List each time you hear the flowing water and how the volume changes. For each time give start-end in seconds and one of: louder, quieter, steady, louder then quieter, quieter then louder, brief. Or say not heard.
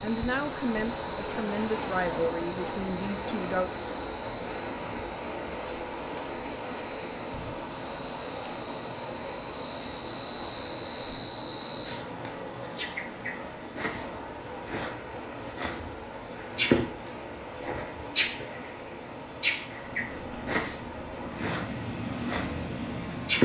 0.0-23.4 quieter.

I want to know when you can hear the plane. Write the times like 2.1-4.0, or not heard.
19.9-23.4.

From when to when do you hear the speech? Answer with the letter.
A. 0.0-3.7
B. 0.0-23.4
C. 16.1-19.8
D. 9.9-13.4
A.